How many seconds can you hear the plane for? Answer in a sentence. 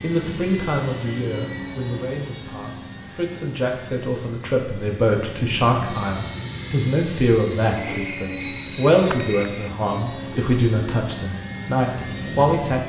The plane can be heard for 13 seconds in total.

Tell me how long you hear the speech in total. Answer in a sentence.
You can hear the speech for 13 seconds altogether.